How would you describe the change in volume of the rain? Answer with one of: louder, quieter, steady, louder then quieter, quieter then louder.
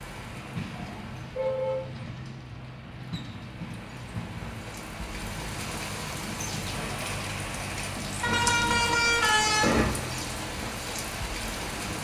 louder.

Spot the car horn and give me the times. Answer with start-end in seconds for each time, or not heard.
0.7-1.8, 8.2-9.8.